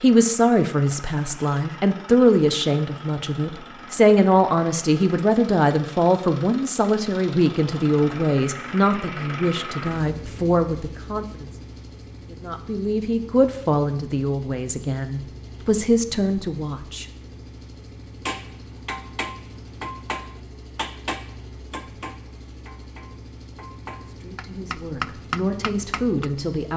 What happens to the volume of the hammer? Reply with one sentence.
The volume of the hammer goes down, then up.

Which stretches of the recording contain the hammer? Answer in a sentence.
You can hear the hammer from 18.2 to 26.3 s.